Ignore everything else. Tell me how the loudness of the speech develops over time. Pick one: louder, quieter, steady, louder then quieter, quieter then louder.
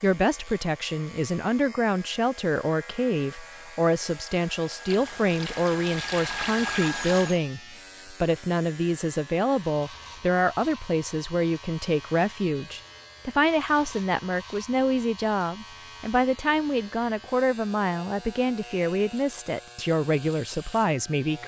steady.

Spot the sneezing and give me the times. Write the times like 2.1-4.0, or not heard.
not heard.